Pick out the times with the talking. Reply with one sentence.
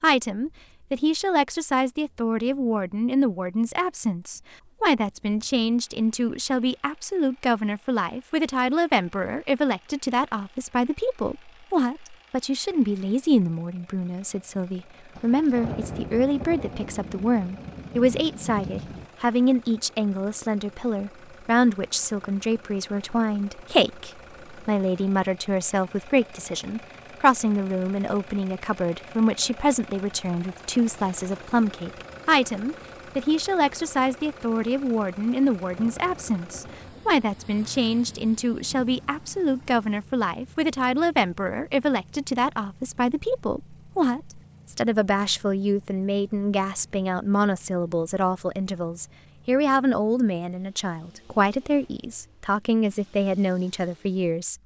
You can hear the talking from 0.0 to 54.5 s.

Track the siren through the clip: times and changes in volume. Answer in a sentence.
You can't hear the siren here.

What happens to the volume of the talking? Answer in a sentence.
The loudness of the talking stays about the same.